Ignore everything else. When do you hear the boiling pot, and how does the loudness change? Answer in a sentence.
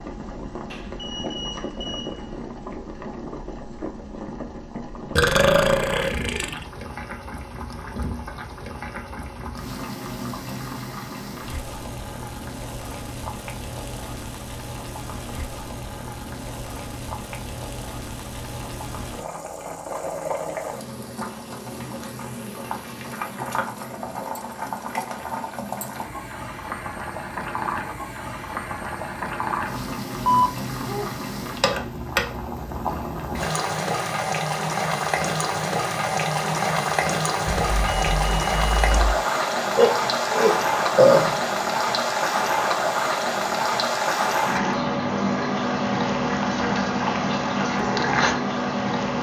You can hear the boiling pot from 0.0 to 49.1 s, getting louder.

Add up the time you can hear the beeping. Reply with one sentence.
You can hear the beeping for 4 seconds altogether.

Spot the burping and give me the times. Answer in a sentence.
The burping can be heard from 5.2 to 6.7 s and from 39.8 to 41.4 s.